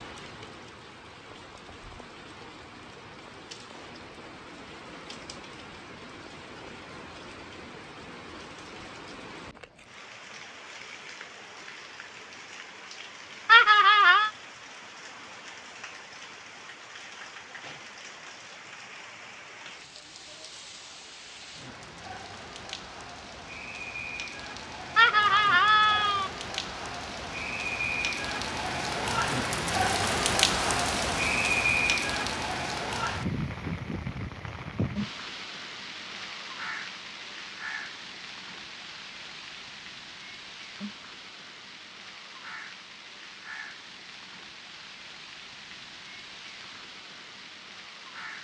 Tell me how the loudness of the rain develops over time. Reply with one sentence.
The volume of the rain goes up, then down.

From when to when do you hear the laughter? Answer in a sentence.
You can hear the laughter from 13.4 to 14.3 s and from 24.9 to 26.3 s.